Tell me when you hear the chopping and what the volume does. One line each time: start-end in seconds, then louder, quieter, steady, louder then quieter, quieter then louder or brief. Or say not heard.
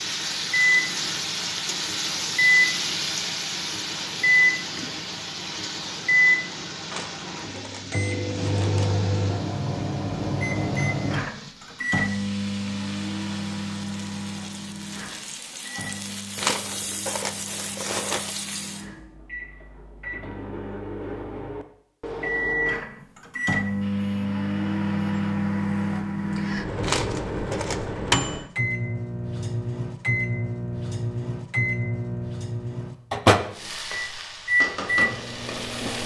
not heard.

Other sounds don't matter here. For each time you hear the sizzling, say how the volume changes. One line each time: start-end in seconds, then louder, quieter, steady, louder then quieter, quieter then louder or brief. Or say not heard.
0.0-18.9 quieter then louder
33.5-36.0 brief.